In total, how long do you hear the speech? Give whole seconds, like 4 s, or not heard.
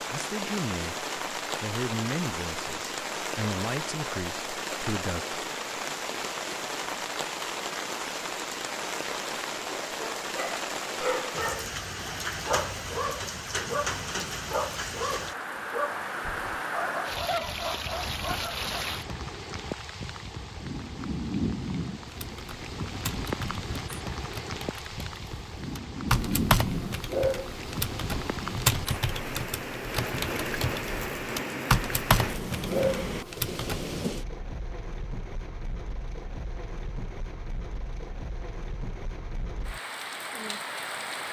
5 s.